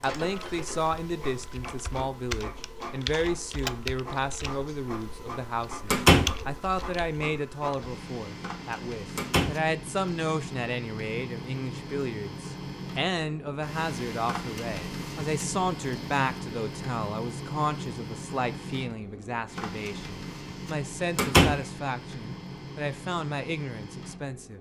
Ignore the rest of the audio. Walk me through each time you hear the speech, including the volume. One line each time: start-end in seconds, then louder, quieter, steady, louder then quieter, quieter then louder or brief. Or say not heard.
0.0-24.5 steady.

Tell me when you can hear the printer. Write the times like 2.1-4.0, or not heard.
0.0-24.5.